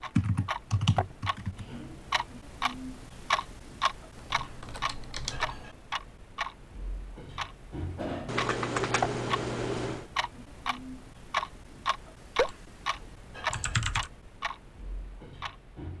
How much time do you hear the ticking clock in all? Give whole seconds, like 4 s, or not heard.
16 s.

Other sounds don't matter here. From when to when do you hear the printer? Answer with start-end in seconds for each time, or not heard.
not heard.